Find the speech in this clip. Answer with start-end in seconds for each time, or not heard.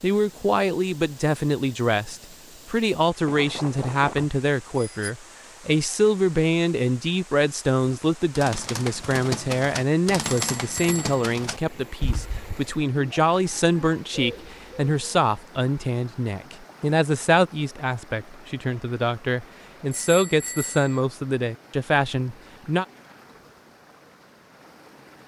0.0-22.9.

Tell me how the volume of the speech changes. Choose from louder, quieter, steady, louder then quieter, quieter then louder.
steady.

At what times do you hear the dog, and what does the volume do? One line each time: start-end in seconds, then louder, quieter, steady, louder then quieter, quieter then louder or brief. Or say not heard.
not heard.